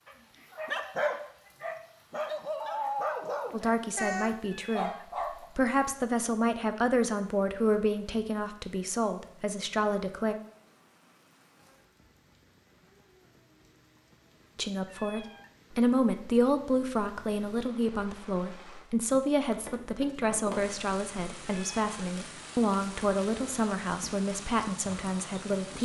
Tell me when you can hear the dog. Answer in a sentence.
You can hear the dog from 0.1 to 5.5 s.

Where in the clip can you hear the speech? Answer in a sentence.
You can hear the speech from 3.5 to 5.0 s, from 5.5 to 10.3 s and from 14.6 to 25.8 s.